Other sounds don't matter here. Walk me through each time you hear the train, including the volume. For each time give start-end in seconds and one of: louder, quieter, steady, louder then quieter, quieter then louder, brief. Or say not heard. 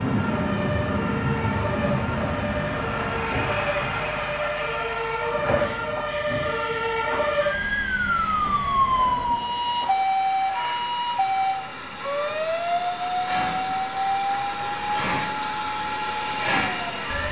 0.0-17.2 quieter then louder.